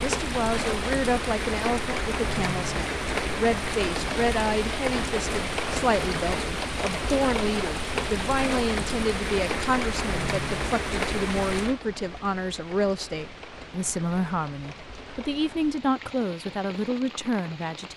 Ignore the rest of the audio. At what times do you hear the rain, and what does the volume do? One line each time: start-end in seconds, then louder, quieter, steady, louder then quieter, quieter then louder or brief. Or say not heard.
0.0-17.9 quieter.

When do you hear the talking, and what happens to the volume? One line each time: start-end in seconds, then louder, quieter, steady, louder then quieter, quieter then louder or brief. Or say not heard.
0.0-17.9 steady.